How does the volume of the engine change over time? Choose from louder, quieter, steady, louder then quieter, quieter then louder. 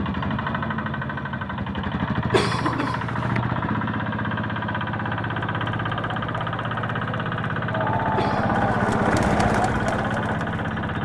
steady.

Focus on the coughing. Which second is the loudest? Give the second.
3 s.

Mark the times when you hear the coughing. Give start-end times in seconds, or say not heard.
2.3-3.4, 8.2-8.8.